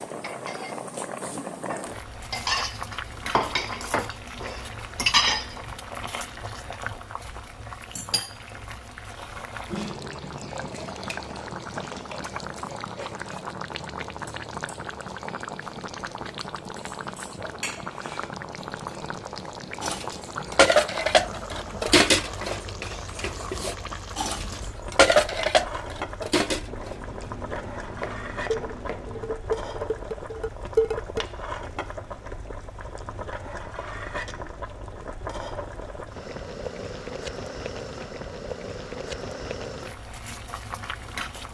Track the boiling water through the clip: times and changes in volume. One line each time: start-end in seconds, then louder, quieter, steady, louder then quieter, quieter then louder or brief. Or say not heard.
0.0-41.4 steady.